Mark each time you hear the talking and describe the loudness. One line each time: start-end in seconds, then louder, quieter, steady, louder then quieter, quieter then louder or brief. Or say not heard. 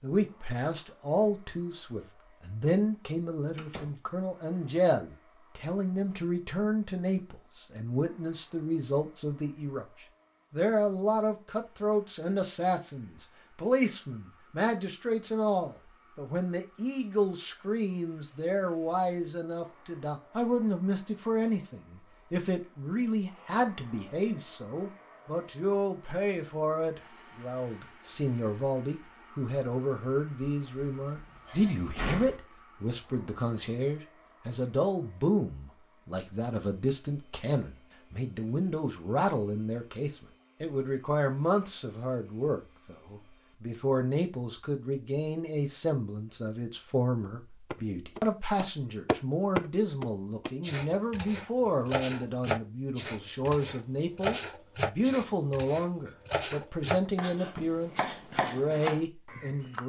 0.0-59.8 steady.